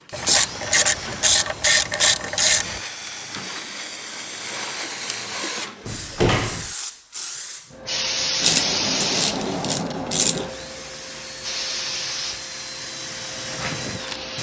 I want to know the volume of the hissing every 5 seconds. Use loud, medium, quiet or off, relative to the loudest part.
medium, loud, medium.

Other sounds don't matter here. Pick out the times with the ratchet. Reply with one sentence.
You can hear the ratchet from 0.1 to 2.8 s and from 8.4 to 10.5 s.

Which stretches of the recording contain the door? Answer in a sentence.
You can hear the door from 5.8 to 6.7 s.